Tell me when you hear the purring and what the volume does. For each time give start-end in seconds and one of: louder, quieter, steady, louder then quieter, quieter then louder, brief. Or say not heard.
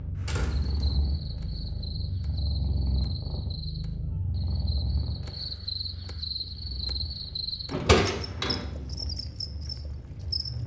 0.0-10.6 quieter.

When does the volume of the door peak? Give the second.
8 s.